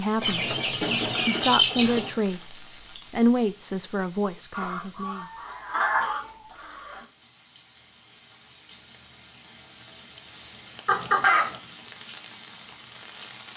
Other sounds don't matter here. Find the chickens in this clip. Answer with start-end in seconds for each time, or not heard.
0.2-2.1, 4.5-7.0, 10.8-11.6.